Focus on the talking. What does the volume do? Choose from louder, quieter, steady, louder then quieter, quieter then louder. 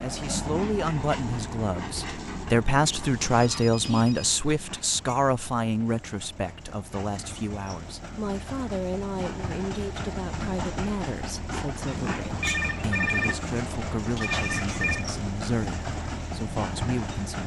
quieter.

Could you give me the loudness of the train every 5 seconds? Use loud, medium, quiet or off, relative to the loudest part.
loud, medium, loud, loud.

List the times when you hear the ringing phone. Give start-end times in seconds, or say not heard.
3.0-4.4, 12.4-15.1.